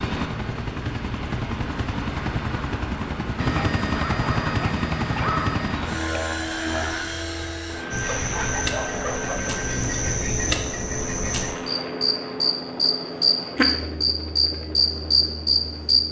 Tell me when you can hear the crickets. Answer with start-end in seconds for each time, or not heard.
7.9-16.0.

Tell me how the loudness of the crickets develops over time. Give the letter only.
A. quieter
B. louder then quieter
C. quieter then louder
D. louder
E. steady
D.